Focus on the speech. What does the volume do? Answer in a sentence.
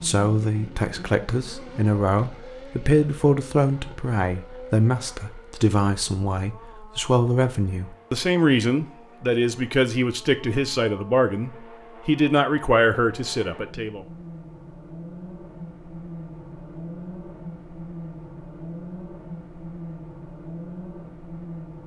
The volume of the speech stays about the same.